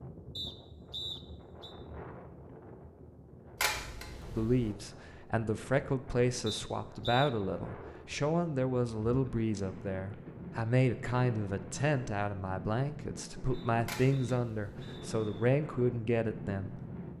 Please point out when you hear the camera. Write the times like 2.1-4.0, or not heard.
3.6-4.7, 13.8-14.9.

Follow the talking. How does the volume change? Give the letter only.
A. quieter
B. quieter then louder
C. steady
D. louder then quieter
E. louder
C.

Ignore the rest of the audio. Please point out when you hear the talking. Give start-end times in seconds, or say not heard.
4.3-16.8.